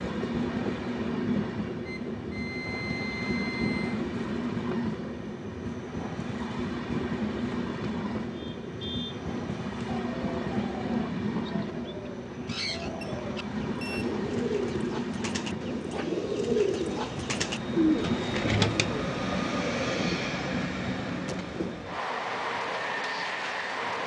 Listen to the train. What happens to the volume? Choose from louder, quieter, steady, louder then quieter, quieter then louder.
steady.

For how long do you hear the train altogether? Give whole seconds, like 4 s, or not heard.
24 s.